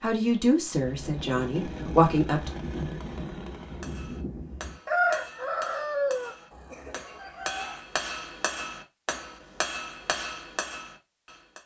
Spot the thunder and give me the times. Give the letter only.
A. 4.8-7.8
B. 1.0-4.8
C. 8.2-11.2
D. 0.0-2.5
B.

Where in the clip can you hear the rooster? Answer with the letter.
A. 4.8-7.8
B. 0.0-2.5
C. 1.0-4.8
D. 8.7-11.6
A.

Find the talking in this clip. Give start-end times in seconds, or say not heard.
0.0-2.5.